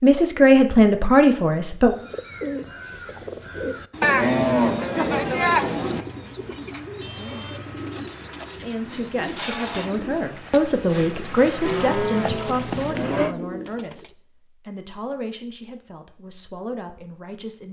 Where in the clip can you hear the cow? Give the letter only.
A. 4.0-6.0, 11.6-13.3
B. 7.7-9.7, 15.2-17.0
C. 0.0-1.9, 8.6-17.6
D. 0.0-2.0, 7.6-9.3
A.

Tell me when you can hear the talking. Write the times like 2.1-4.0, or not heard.
0.0-1.9, 8.6-17.6.